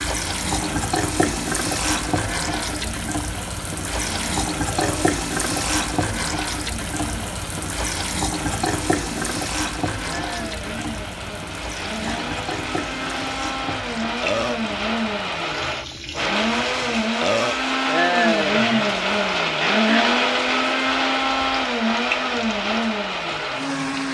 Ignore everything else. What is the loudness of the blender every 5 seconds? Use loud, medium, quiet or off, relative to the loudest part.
quiet, quiet, medium, loud, loud.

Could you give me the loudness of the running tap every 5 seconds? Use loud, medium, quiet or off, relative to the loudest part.
loud, loud, medium, medium, quiet.